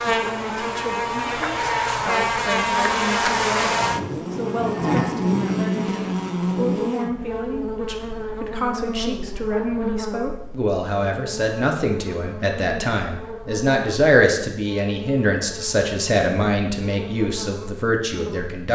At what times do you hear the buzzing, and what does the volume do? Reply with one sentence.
The buzzing can be heard from 0.0 to 18.6 s, getting quieter.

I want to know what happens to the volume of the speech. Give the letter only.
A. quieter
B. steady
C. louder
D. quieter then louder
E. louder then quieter
C.